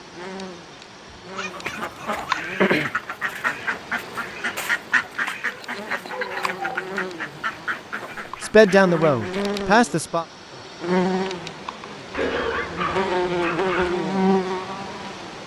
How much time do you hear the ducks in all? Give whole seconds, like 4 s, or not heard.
8 s.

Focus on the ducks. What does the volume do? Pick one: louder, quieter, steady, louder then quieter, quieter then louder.
quieter.